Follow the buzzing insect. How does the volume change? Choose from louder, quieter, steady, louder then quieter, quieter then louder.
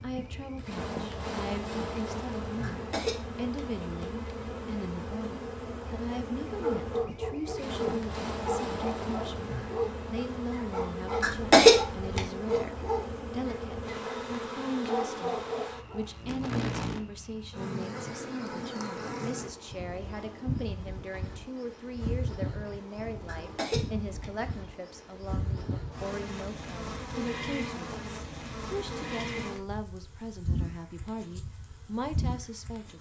steady.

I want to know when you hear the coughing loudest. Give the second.
12 s.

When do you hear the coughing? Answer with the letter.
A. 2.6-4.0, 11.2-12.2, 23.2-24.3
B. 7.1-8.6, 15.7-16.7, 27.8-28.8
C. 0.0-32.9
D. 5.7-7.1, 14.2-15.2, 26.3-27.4
A.